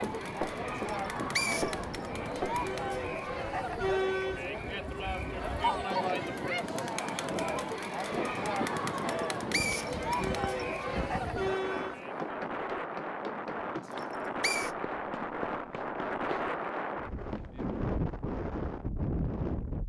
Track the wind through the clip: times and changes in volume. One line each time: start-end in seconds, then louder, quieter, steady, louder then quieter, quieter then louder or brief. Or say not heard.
0.0-19.8 louder.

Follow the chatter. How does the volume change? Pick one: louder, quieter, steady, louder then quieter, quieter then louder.
steady.